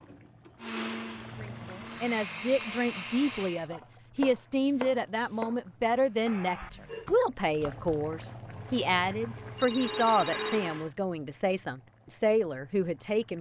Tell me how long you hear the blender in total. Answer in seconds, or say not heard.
6 s.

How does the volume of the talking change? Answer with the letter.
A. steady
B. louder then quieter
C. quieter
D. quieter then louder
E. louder
A.